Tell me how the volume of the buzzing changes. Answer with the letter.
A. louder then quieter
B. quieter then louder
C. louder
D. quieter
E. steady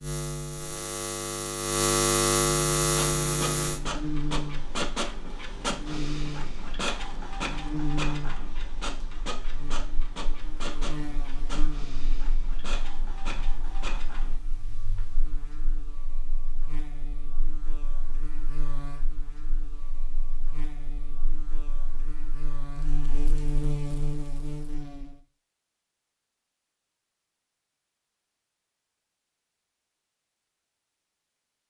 B.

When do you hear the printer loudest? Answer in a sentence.
The loudest moment of the printer is at 5 seconds.